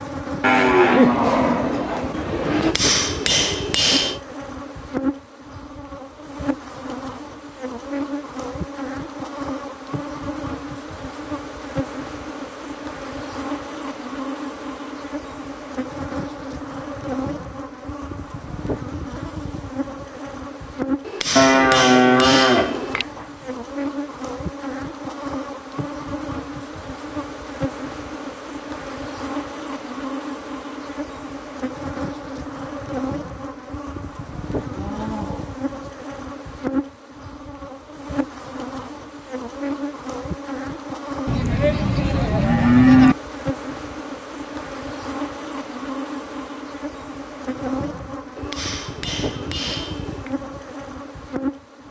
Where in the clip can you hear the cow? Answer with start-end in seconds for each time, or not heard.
0.4-2.8, 21.4-23.2, 34.6-35.6, 41.2-43.1.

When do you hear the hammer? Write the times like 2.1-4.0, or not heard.
2.5-4.2, 21.0-23.1, 48.4-50.4.